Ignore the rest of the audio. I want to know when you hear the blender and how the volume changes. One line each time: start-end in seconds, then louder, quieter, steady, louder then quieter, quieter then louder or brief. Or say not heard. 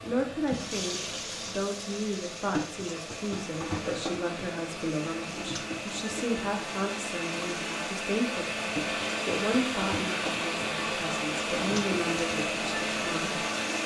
0.0-13.8 louder.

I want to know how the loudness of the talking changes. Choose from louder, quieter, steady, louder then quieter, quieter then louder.
steady.